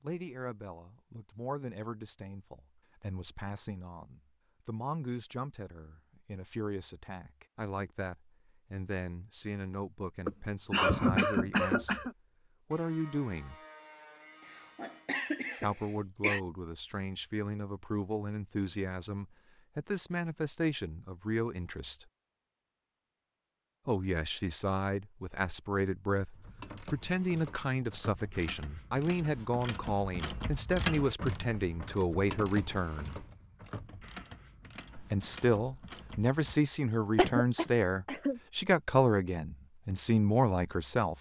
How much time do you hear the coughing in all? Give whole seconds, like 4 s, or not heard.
5 s.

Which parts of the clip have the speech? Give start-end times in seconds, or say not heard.
0.0-11.9, 12.7-13.6, 15.6-22.1, 23.9-33.2, 35.0-41.1.